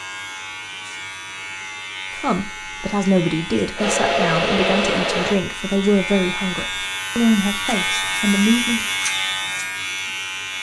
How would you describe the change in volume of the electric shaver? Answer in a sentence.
The loudness of the electric shaver goes up.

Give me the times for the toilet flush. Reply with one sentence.
The toilet flush can't be heard in this clip.